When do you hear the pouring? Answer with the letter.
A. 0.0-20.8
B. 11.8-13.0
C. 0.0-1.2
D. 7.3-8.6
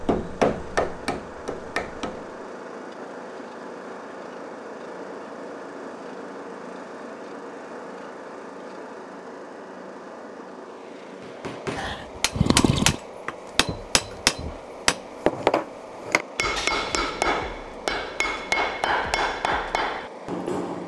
B.